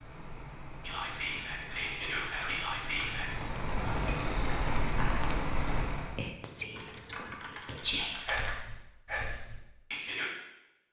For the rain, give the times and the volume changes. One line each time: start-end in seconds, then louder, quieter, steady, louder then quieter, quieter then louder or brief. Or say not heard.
0.0-6.3 louder.